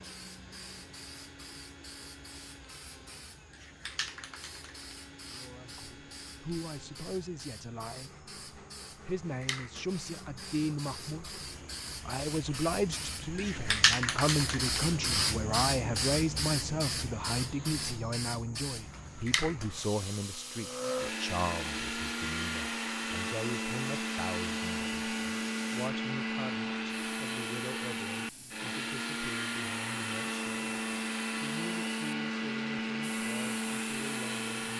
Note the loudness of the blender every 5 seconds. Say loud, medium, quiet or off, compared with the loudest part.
quiet, quiet, quiet, quiet, loud, loud, loud.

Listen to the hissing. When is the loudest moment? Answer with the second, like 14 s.
14 s.